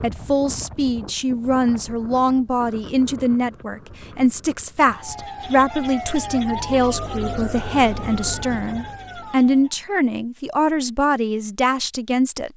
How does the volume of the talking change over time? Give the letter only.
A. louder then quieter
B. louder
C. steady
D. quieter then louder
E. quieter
C.